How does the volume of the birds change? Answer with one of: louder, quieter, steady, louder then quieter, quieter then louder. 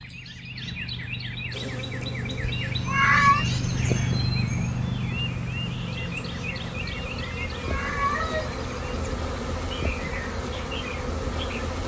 louder then quieter.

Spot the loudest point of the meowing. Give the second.
3 s.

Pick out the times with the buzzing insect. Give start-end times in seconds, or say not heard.
1.5-11.8.